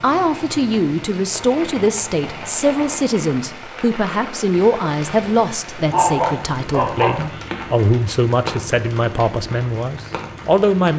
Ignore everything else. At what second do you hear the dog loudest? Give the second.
6 s.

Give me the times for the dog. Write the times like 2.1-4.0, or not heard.
5.9-7.6.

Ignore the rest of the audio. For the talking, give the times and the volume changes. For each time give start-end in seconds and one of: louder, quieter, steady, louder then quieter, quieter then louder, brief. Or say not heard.
0.0-10.9 steady.